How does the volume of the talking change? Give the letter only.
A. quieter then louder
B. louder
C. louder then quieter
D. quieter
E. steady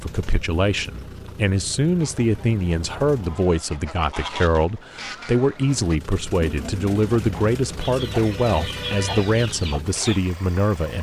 E.